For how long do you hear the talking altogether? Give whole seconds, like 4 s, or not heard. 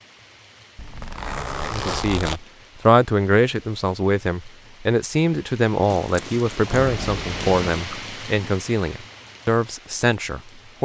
9 s.